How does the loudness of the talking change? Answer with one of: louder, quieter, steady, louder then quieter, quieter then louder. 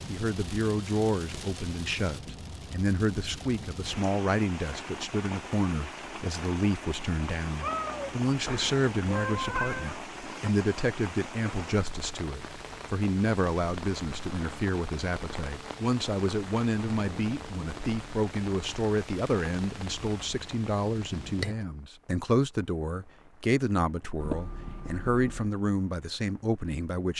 steady.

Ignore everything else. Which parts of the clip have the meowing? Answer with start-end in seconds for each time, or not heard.
7.6-10.0, 24.2-25.5.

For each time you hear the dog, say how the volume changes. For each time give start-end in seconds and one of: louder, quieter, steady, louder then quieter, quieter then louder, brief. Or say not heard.
not heard.